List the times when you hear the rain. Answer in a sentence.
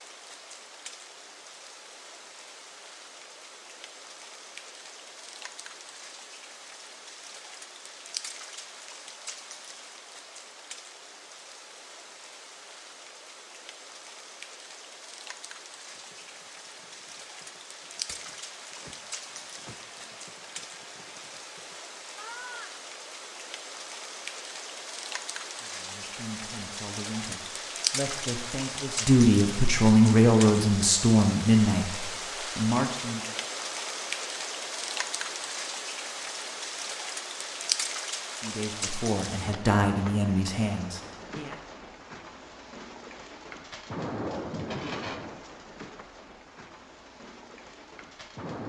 The rain can be heard from 0.0 to 48.6 s.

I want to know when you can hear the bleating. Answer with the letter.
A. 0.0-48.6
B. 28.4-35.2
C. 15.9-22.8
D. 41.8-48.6
C.